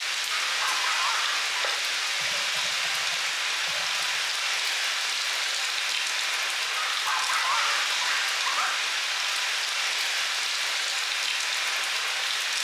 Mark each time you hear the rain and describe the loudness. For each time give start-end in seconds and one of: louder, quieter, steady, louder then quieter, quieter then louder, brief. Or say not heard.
0.0-12.5 steady.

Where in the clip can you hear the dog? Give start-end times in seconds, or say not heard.
0.4-1.8, 6.8-8.8.